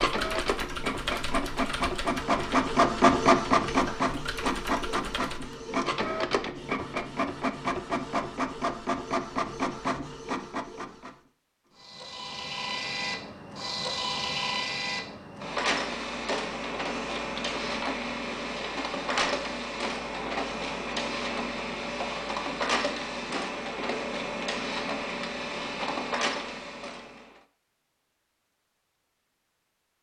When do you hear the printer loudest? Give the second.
3 s.